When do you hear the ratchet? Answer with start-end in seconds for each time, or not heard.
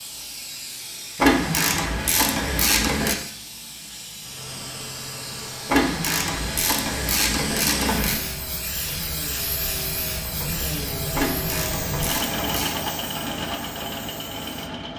1.1-3.1, 5.7-8.2, 11.1-12.8.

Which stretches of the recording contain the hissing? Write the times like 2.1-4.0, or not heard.
0.0-14.9.